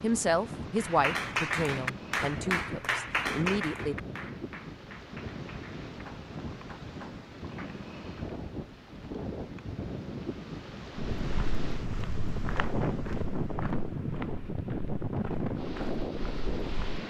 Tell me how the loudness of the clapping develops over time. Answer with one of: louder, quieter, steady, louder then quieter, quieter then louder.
quieter.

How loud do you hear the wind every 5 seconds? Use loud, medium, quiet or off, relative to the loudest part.
medium, medium, loud, loud.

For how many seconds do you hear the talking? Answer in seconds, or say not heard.
4 s.